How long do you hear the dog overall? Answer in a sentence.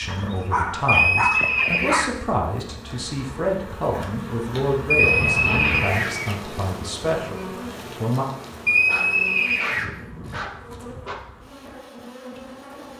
The dog can be heard for 6 seconds in total.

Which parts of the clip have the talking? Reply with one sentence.
The talking can be heard from 0.0 to 8.2 s.